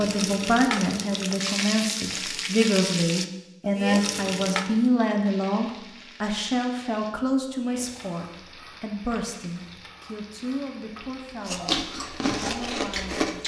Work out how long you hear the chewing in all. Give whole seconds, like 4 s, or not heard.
2 s.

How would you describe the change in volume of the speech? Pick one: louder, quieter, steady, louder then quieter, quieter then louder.
quieter.